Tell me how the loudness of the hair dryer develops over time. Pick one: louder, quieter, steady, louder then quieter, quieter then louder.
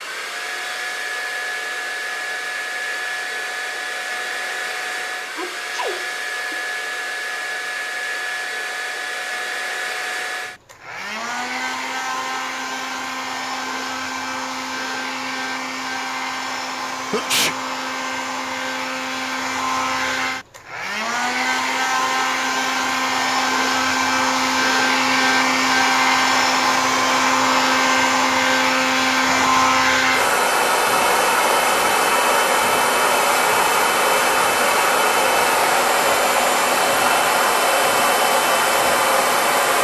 louder.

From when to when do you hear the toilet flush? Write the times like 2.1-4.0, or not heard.
not heard.